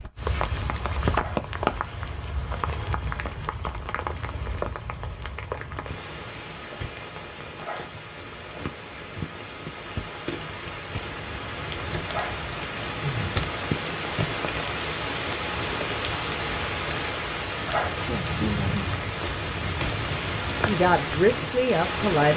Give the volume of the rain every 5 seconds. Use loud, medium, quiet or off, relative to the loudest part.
loud, medium, loud, loud, loud.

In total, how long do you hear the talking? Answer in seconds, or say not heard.
2 s.